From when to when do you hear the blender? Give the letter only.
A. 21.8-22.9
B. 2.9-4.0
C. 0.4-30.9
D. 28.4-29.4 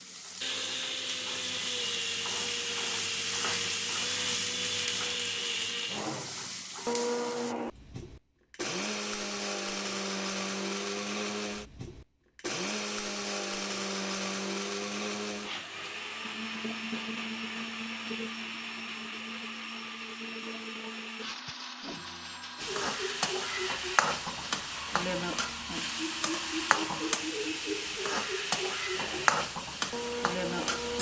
C.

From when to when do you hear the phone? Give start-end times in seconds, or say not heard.
21.8-22.9.